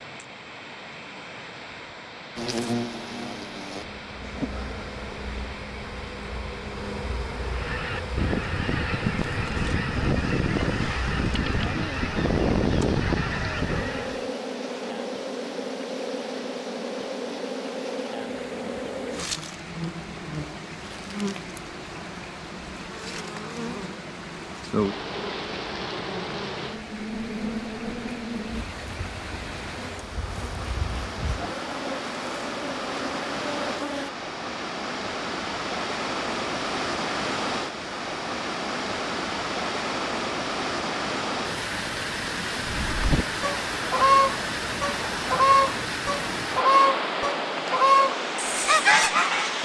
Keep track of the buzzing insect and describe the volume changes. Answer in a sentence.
The volume of the buzzing insect stays about the same.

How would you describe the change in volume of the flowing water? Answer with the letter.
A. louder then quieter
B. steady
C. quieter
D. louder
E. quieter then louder
D.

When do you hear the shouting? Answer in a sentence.
You can't hear the shouting here.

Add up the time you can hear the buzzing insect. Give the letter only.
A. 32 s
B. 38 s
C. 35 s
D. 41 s
A.